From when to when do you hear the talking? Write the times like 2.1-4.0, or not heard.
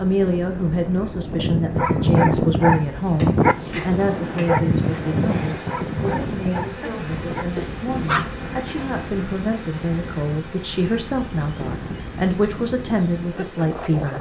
0.0-14.1.